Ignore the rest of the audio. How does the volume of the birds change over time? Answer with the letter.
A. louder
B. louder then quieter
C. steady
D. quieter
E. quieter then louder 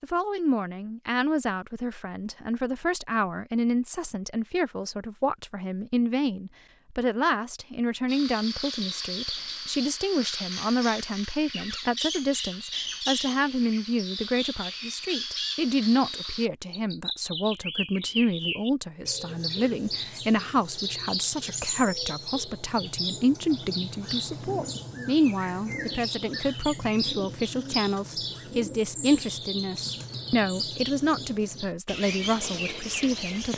C.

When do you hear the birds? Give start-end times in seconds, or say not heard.
8.1-33.5.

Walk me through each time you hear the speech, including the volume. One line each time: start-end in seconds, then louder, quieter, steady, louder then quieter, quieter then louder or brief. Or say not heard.
0.0-33.5 steady.